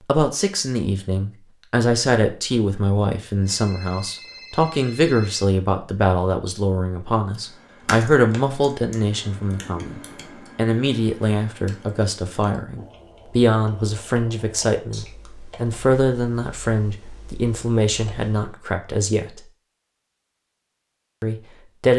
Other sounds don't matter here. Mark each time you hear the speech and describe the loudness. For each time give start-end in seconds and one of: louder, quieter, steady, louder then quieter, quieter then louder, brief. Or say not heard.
0.1-19.4 steady
21.2-21.9 brief.